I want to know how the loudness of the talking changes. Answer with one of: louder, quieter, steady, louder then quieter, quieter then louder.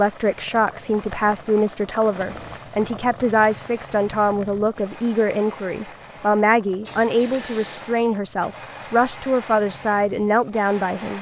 steady.